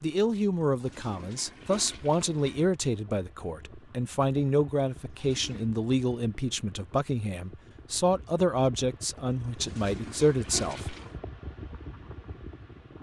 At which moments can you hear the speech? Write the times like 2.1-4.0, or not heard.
0.0-10.9.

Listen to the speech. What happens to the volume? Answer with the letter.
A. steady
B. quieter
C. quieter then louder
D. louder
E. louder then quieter
A.